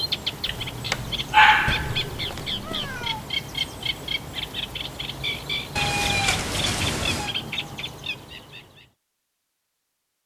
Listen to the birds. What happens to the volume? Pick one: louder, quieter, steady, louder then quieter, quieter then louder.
steady.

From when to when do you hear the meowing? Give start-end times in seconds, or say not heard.
1.6-3.2, 5.8-7.3.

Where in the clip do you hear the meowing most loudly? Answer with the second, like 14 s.
6 s.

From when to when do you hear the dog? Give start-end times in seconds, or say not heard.
0.5-2.4.